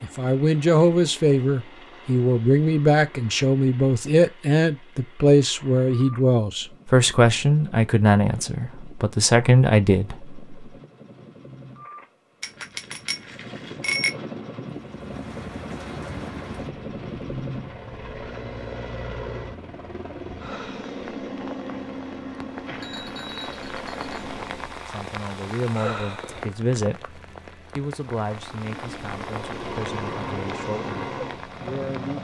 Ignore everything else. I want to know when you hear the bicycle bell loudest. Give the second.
14 s.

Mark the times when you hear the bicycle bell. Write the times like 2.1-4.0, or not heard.
12.4-14.2, 22.6-24.4.